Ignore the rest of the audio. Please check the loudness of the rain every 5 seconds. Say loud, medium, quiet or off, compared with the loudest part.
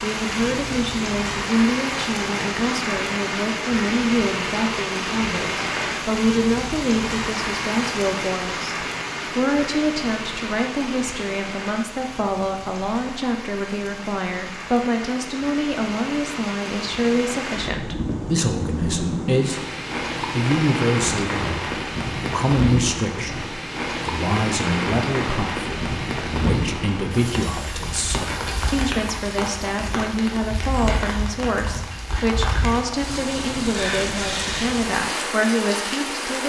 loud, loud, medium, loud, loud, loud, loud, loud.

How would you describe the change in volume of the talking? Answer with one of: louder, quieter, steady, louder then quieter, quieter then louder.
steady.